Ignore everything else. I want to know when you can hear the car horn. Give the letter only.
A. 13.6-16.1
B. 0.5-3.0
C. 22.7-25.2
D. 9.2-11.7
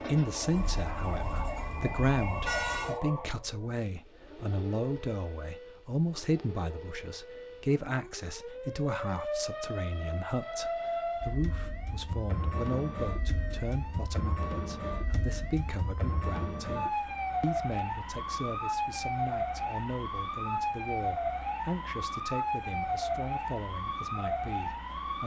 B.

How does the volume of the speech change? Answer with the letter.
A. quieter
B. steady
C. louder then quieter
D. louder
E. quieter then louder
A.